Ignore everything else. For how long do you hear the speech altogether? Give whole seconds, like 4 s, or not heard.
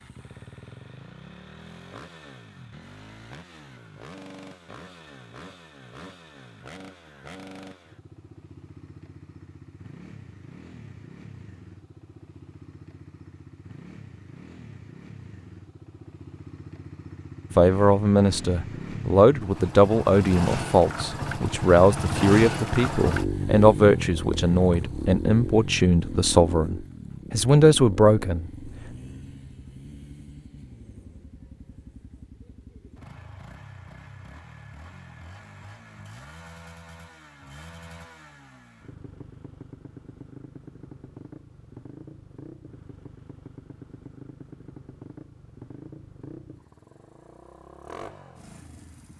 11 s.